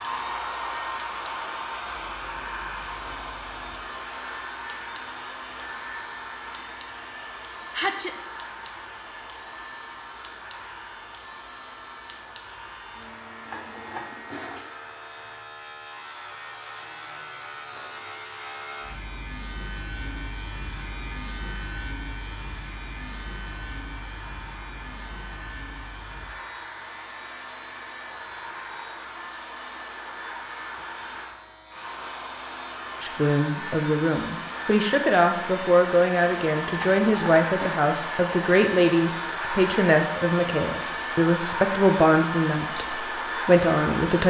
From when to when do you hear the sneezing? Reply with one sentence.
The sneezing can be heard from 7.7 to 8.2 s.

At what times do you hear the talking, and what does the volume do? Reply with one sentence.
You can hear the talking from 33.0 to 44.2 s, at a steady volume.